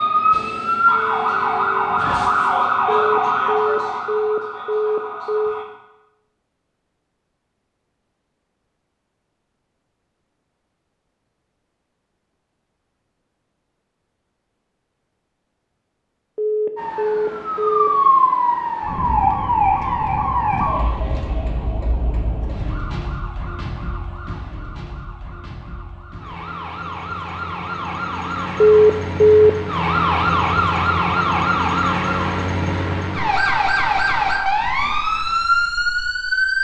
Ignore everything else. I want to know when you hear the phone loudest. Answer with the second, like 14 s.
29 s.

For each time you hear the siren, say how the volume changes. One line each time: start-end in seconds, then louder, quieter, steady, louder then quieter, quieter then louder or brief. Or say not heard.
0.0-5.7 quieter
16.8-36.6 quieter then louder.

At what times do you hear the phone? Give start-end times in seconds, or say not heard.
2.9-5.5, 16.4-17.9, 28.6-29.5.